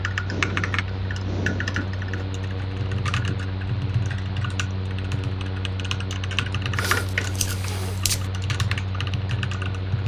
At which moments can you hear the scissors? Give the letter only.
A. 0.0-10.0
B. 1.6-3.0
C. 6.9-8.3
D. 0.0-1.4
C.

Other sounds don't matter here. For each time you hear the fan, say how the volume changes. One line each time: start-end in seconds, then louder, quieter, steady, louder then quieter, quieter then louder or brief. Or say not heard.
0.0-10.0 steady.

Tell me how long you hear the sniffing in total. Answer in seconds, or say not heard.
3 s.